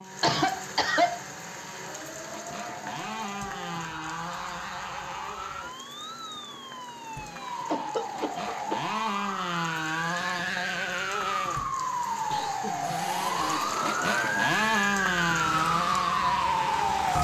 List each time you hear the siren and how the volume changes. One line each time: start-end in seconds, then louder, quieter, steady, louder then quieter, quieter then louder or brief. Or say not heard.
0.0-17.1 louder.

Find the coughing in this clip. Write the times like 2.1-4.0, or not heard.
0.2-1.1, 7.7-8.8, 12.3-13.8.